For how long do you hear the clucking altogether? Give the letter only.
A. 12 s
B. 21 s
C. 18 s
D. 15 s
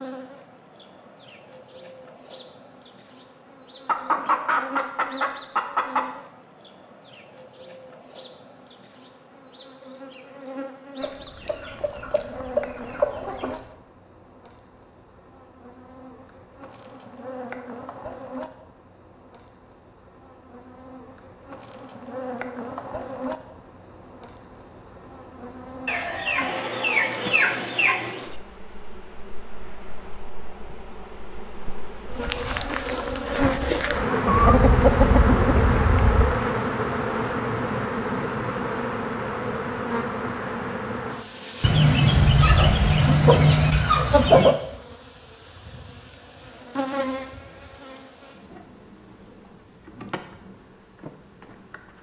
A.